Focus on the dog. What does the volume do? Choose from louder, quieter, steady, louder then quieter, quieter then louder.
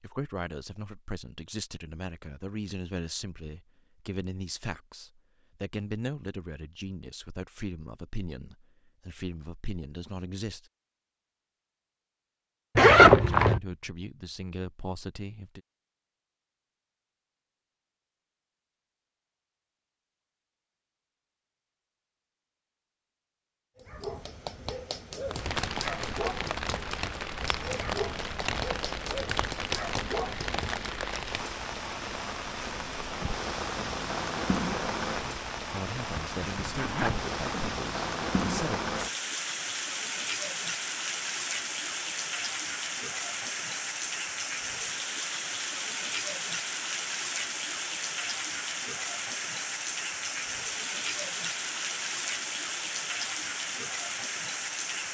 steady.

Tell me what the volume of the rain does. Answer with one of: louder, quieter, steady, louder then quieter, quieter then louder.
steady.